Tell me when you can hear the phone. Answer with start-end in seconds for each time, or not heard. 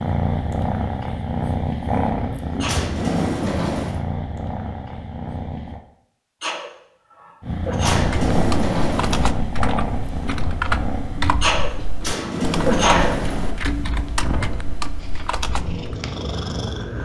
not heard.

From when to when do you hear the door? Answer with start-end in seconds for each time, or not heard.
2.6-4.0, 7.8-9.3, 12.0-13.6.